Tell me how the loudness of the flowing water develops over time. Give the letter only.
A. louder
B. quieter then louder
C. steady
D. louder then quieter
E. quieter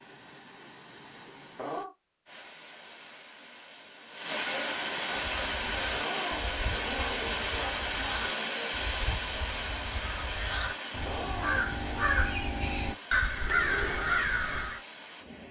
D.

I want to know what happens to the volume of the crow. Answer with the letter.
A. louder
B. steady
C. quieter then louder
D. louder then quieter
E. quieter
A.